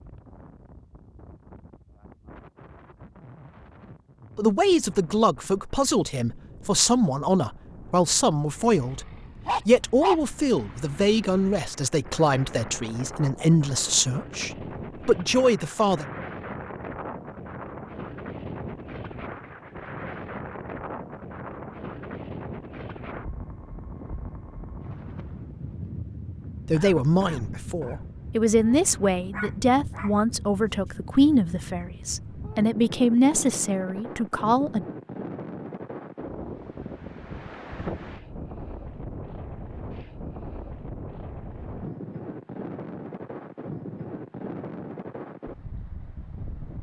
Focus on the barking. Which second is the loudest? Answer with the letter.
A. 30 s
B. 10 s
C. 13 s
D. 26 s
B.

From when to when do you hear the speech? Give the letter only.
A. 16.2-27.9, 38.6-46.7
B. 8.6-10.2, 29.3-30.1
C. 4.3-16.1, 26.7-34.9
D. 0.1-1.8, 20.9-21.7
C.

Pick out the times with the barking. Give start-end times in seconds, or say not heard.
8.6-10.2, 29.3-30.1.